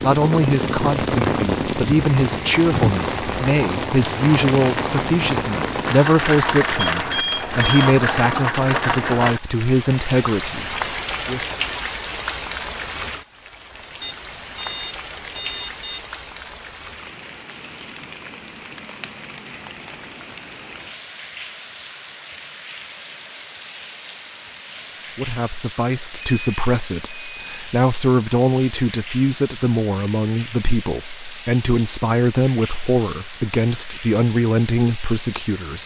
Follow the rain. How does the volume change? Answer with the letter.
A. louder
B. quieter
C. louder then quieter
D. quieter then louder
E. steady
B.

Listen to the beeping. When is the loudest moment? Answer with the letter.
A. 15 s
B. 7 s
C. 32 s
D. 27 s
B.